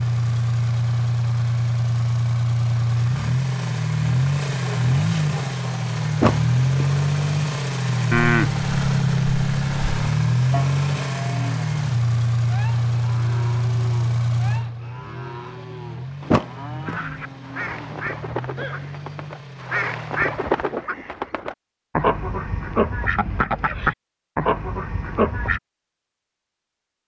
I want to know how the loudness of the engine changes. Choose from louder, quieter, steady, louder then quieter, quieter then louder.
quieter.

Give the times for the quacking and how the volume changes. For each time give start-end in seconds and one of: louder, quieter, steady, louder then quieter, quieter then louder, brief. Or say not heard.
16.9-25.6 louder.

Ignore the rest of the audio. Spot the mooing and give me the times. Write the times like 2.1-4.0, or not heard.
8.1-18.9.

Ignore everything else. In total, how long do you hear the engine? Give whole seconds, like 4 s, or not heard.
21 s.